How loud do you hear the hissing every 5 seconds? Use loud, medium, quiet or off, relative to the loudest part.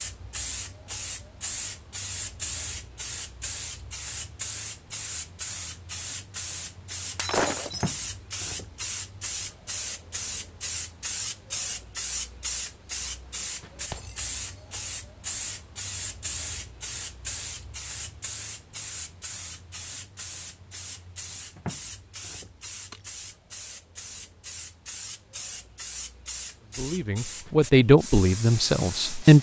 loud, loud, loud, loud, medium, loud.